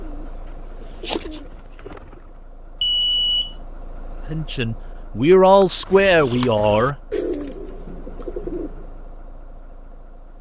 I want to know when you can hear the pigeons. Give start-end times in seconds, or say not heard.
0.0-2.5, 5.8-9.0.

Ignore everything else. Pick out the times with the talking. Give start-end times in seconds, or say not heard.
4.3-7.0.